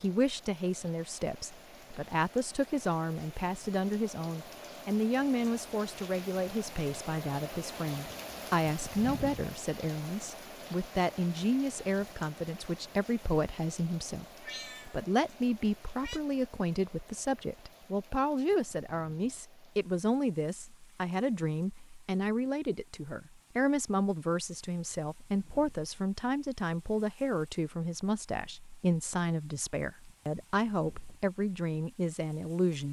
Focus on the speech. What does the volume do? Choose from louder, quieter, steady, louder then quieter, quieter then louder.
steady.